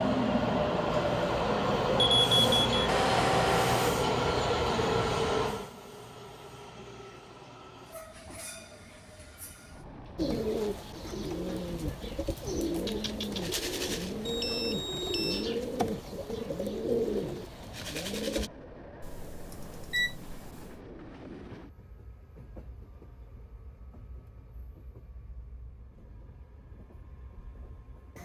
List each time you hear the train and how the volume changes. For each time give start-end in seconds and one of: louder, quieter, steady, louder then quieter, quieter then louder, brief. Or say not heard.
0.0-28.1 quieter.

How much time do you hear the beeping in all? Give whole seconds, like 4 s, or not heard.
5 s.